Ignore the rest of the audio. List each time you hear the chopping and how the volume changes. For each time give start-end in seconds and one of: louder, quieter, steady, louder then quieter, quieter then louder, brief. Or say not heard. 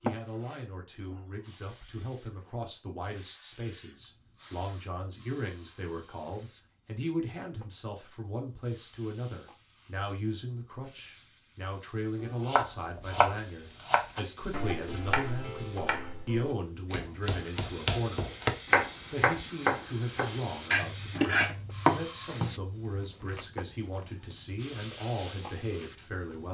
12.2-22.6 quieter then louder.